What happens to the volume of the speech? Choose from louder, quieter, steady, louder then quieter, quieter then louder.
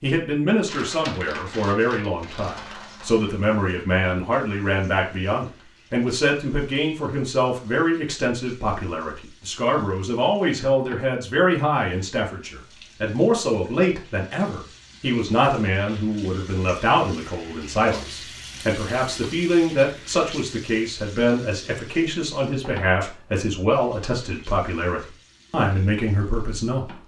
steady.